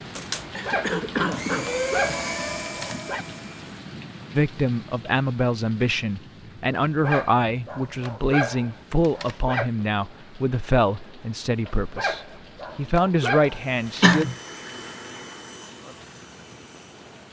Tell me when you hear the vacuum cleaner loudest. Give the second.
2 s.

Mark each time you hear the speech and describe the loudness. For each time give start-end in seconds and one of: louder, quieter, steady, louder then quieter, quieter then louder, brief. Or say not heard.
4.3-14.2 steady.